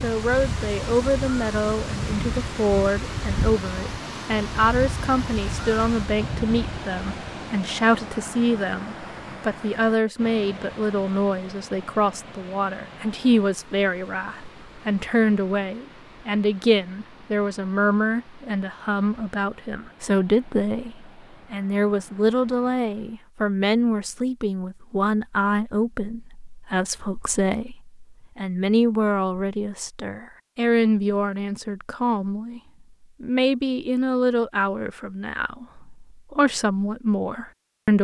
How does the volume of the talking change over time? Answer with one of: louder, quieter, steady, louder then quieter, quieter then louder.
steady.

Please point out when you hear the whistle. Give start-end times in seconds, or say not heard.
not heard.